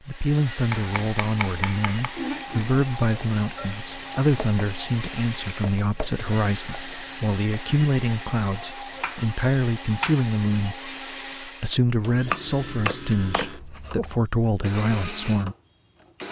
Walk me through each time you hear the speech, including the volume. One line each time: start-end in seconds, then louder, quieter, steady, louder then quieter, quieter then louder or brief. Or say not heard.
0.1-15.6 steady.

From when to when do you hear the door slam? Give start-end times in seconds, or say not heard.
not heard.